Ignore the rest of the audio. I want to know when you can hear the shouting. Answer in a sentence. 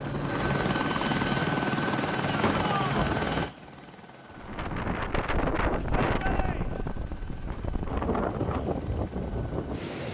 The shouting can be heard from 2.2 to 3.1 s and from 5.9 to 6.9 s.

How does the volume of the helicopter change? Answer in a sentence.
The volume of the helicopter goes down.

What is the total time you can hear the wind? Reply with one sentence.
You can hear the wind for 6 seconds altogether.